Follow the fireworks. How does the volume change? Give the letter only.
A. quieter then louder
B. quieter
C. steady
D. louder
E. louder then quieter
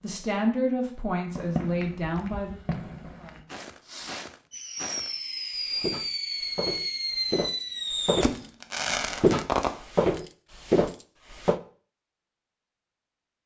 D.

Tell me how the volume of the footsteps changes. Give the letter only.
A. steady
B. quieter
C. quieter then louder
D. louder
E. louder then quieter
D.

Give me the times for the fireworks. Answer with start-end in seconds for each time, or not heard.
1.4-9.8.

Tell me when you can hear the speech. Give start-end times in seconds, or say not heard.
0.0-3.6.